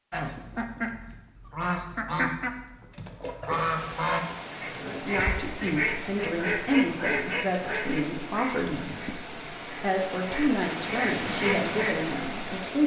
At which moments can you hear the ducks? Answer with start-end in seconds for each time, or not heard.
0.1-12.1.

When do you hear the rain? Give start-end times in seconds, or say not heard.
3.6-12.8.